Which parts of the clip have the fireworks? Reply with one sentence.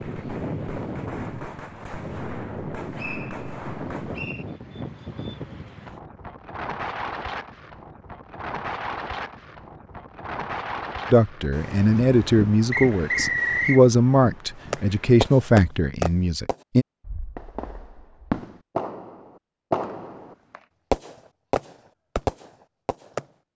The fireworks can be heard from 0.0 to 4.3 s and from 14.7 to 23.2 s.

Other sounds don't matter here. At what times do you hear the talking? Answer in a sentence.
The talking can be heard from 11.1 to 16.9 s.